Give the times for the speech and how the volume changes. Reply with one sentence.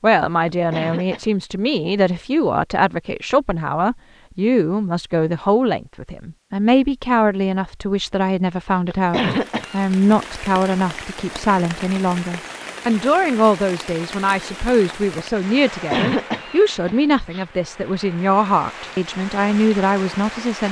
You can hear the speech from 0.0 to 20.6 s, at a steady volume.